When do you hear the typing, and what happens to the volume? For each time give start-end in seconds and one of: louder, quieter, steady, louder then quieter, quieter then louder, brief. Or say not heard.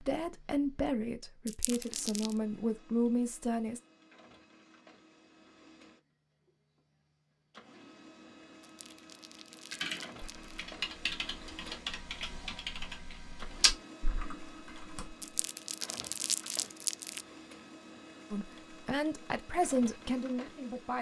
9.7-15.2 louder then quieter.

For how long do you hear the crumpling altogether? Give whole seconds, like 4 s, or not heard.
5 s.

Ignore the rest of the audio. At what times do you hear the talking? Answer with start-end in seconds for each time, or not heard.
0.0-3.8, 18.3-20.9.